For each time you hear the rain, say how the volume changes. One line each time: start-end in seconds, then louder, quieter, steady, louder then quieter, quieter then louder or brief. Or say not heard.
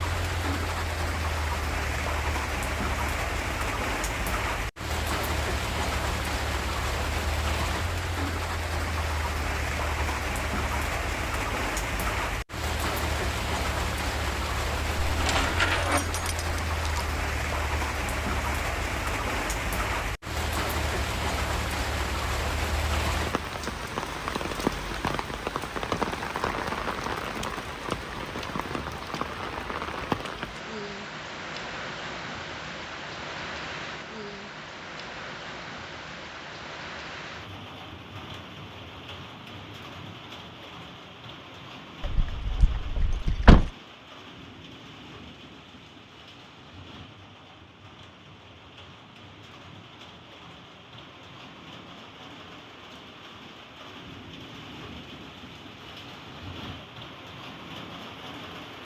0.0-58.7 quieter.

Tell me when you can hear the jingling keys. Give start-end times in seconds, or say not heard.
15.1-17.1, 42.0-43.7.